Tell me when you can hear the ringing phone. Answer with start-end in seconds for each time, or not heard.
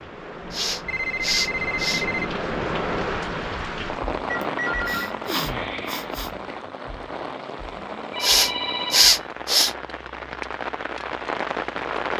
0.8-2.3, 4.2-6.1, 8.1-9.2.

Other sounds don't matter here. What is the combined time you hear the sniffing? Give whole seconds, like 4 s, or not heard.
5 s.